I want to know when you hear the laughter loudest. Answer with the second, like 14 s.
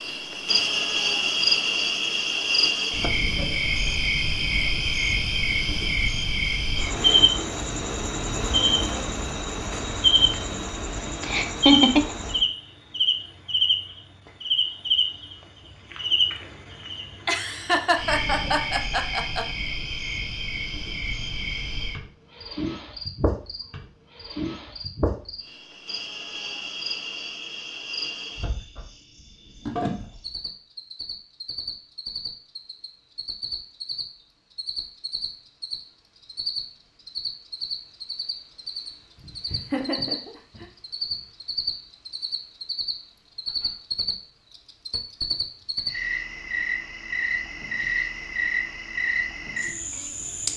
12 s.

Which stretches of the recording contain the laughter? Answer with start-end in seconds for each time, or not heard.
11.2-12.1, 17.2-19.4, 39.1-40.6.